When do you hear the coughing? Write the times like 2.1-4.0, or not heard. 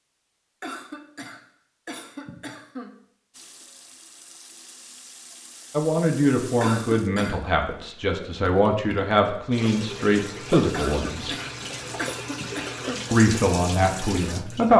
0.6-3.0, 6.6-7.5, 10.7-13.1.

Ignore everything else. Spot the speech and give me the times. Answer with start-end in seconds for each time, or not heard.
5.7-11.3, 13.1-14.7.